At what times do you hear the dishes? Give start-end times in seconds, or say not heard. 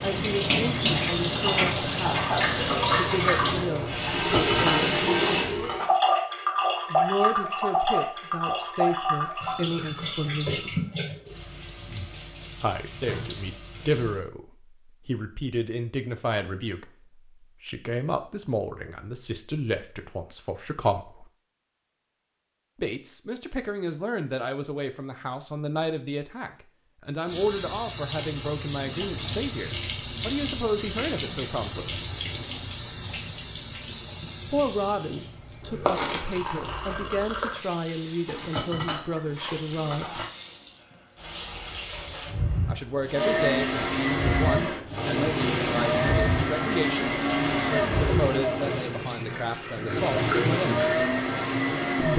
4.0-5.9, 38.2-40.3.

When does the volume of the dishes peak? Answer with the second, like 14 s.
5 s.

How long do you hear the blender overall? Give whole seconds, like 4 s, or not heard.
9 s.